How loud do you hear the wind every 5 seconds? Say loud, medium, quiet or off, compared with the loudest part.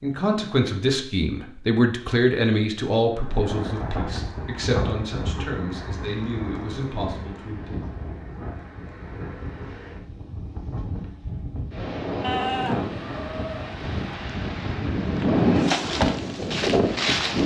medium, quiet, medium, loud.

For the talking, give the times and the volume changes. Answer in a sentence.
The talking can be heard from 0.0 to 7.8 s, getting quieter.